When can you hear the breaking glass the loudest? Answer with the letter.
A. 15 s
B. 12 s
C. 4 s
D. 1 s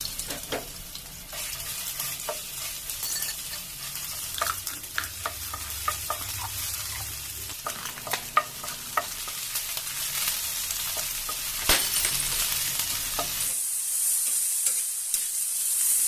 B.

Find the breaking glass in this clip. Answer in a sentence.
The breaking glass can be heard from 3.0 to 3.5 s and from 11.7 to 12.4 s.